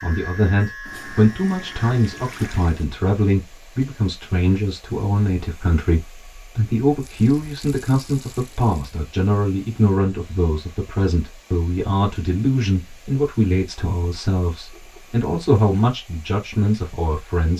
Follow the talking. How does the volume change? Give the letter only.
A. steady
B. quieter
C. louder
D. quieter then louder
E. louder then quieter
A.